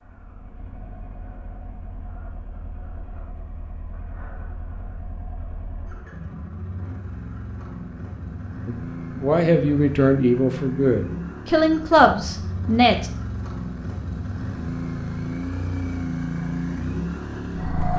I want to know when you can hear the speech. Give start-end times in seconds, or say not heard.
8.7-13.1.